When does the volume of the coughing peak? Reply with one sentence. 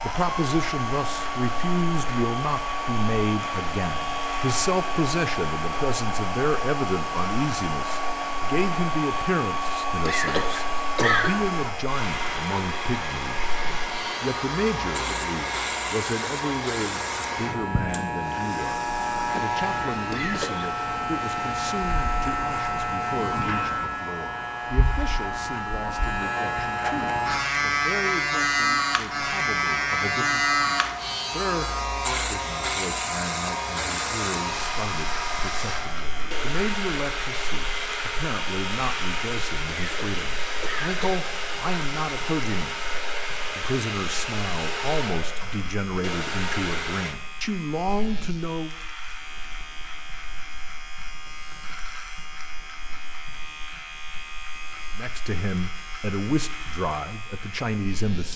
The loudest moment of the coughing is at 11 seconds.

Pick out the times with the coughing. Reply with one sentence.
You can hear the coughing from 10.1 to 11.3 s, from 20.1 to 20.7 s and from 39.7 to 41.2 s.